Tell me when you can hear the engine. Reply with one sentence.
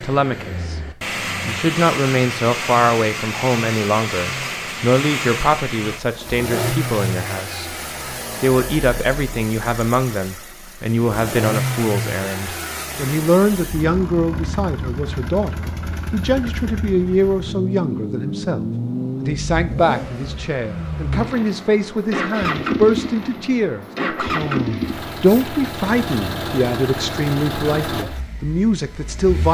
The engine can be heard from 0.0 to 29.4 s.